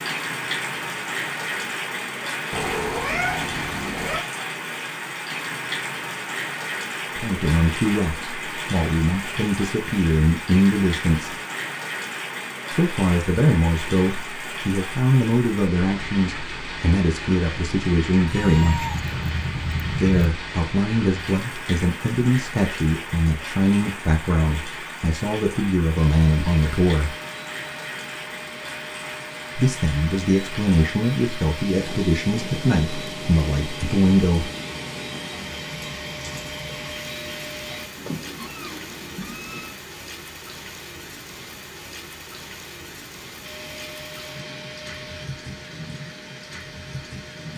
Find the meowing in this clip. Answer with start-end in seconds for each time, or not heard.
2.5-4.2, 18.2-20.1, 38.0-39.8.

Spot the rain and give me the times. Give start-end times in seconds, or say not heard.
0.0-47.5.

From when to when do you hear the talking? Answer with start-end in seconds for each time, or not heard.
7.2-11.3, 12.7-18.9, 19.9-27.1, 29.6-34.5.